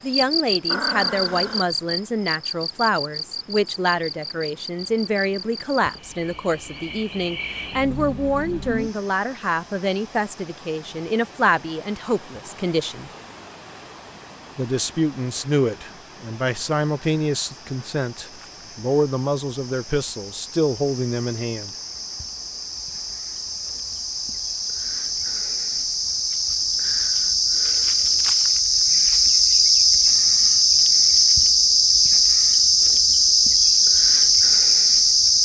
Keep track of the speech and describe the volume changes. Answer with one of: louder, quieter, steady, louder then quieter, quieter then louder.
steady.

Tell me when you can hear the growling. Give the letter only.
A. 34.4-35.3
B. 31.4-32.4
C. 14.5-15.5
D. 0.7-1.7
D.